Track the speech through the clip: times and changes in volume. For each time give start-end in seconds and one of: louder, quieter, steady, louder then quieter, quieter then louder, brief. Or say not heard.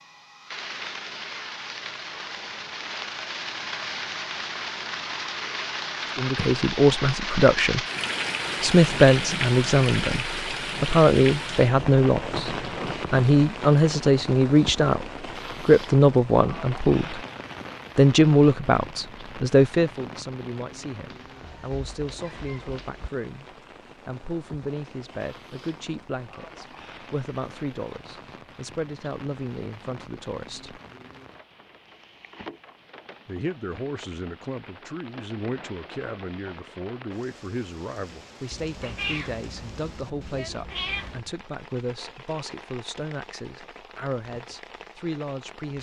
6.2-7.8 brief
8.6-17.2 steady
17.9-30.8 quieter
33.2-45.7 steady.